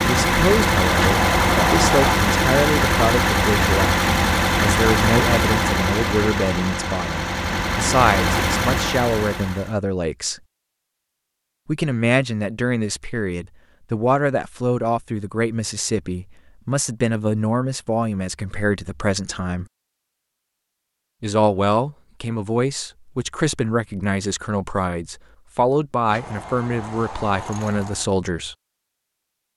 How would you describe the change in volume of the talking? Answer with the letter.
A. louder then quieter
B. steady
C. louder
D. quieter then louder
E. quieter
B.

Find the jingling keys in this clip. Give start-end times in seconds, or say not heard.
0.9-2.1, 26.1-28.1.